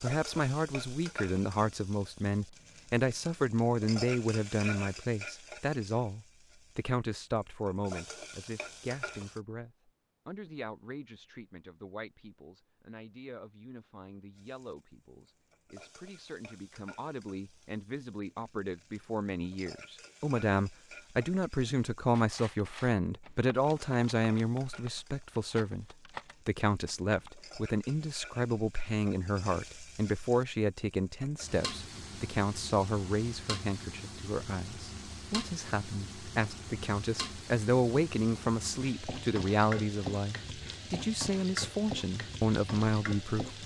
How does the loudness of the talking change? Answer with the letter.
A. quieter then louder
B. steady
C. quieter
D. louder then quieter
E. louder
A.